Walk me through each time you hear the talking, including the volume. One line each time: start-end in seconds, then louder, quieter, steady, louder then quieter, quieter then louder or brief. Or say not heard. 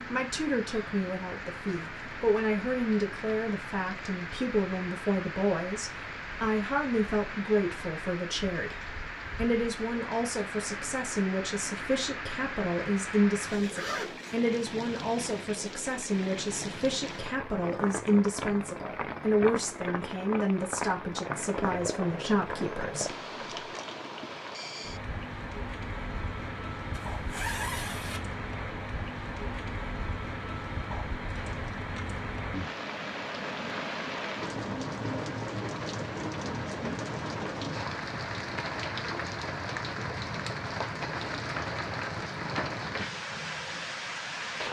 0.1-23.1 steady.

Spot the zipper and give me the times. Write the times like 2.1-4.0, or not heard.
13.4-14.3, 26.9-28.2.